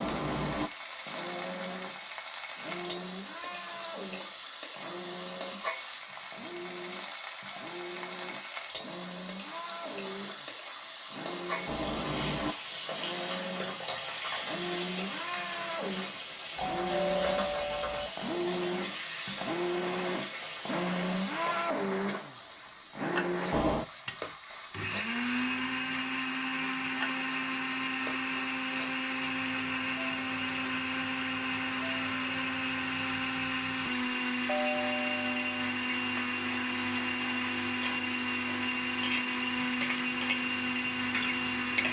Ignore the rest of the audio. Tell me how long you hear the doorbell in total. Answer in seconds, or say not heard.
3 s.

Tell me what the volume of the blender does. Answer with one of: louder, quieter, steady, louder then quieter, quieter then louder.
louder.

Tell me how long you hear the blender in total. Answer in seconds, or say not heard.
42 s.